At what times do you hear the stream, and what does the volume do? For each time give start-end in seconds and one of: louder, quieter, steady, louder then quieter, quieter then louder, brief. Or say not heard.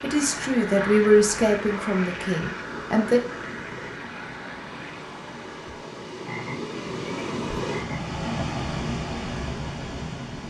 0.0-10.4 louder.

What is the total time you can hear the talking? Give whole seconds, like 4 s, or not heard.
3 s.